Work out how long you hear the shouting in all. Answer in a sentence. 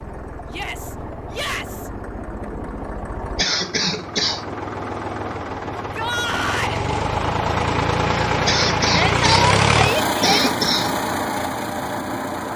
You can hear the shouting for 4 seconds altogether.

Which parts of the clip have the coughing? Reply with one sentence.
The coughing can be heard from 3.4 to 4.5 s and from 8.4 to 11.0 s.